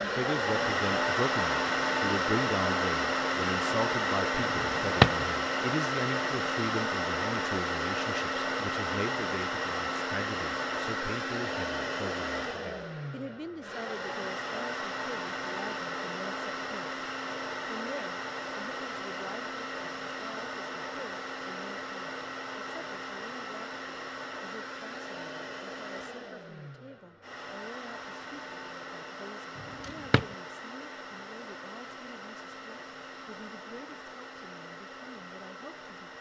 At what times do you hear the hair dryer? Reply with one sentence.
You can hear the hair dryer from 0.0 to 36.1 s.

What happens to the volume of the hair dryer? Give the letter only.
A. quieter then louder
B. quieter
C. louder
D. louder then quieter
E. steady
B.